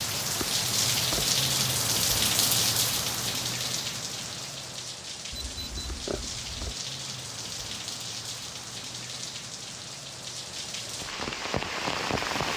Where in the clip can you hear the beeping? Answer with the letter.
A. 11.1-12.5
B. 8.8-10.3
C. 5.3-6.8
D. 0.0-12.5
C.